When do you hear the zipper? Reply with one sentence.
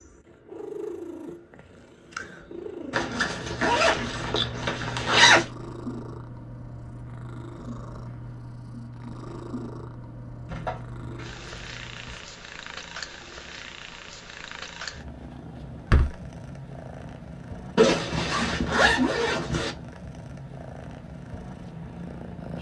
The zipper can be heard from 2.9 to 5.5 s, from 10.4 to 12.2 s and from 17.8 to 19.8 s.